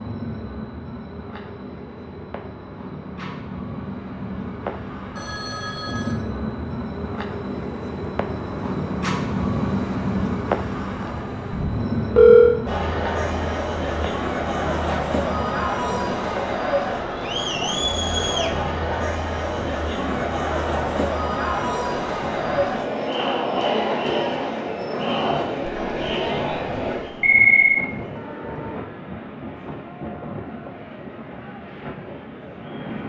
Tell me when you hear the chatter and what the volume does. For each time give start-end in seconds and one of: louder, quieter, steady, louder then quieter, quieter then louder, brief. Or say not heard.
12.7-33.0 quieter.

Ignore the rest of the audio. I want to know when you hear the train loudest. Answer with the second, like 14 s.
10 s.